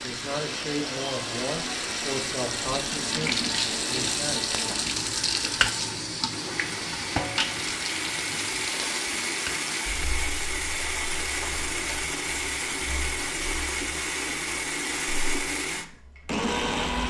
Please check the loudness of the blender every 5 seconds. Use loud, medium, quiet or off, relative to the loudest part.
medium, loud, loud, loud.